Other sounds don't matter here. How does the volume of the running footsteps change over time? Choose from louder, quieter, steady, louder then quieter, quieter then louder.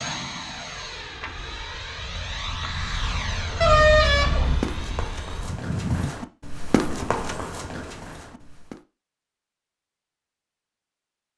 louder then quieter.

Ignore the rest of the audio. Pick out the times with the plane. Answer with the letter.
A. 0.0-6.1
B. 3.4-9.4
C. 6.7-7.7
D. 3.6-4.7
A.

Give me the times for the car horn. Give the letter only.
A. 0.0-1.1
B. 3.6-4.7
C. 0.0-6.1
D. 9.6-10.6
B.